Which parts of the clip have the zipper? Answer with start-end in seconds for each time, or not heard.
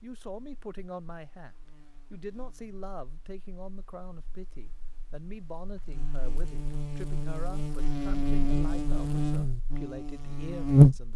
not heard.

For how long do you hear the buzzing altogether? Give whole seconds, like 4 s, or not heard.
11 s.